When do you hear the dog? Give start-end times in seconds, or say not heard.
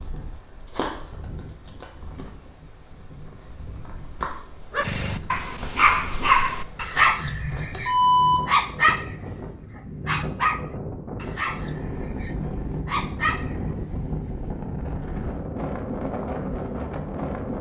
4.7-13.8.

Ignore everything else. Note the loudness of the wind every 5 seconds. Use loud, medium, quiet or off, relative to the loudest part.
quiet, medium, loud, loud.